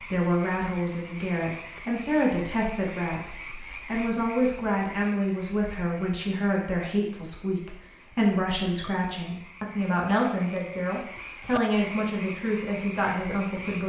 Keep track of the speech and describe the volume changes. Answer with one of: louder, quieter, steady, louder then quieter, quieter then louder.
steady.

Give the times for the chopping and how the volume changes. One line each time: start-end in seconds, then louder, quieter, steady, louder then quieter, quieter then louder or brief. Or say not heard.
not heard.